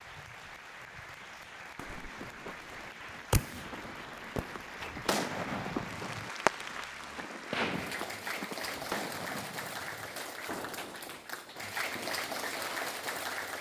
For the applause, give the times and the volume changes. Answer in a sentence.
The applause can be heard from 0.0 to 13.5 s, getting louder.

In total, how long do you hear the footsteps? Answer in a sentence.
The footsteps can be heard for 7 seconds in total.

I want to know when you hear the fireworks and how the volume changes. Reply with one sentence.
The fireworks can be heard from 1.8 to 11.2 s, getting quieter; and briefly from 11.9 to 12.9 s.